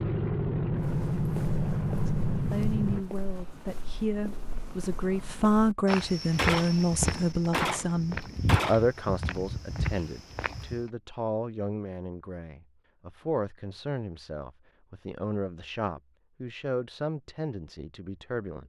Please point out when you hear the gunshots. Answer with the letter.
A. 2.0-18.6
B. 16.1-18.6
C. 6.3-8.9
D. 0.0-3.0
C.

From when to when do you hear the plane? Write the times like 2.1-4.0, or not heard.
0.0-3.0.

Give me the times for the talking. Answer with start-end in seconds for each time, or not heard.
2.0-18.6.